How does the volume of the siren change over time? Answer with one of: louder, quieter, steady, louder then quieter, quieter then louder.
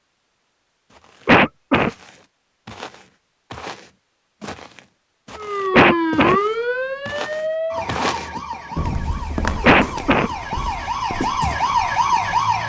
quieter then louder.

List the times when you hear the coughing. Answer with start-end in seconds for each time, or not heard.
1.2-1.9, 5.7-6.4, 9.6-10.3.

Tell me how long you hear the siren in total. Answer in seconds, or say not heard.
7 s.